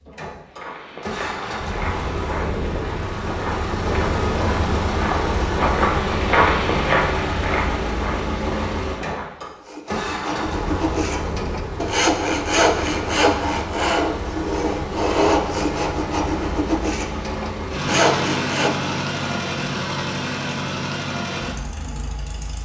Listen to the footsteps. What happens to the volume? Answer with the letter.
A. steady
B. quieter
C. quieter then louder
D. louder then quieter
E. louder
D.